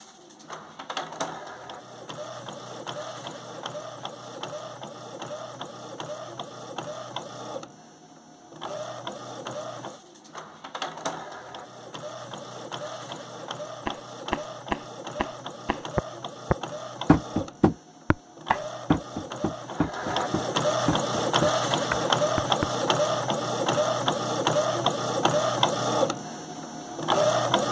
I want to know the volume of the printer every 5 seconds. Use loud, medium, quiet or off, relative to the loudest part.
quiet, quiet, quiet, quiet, loud, loud.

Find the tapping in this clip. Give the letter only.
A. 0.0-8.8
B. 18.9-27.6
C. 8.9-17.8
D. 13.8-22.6
D.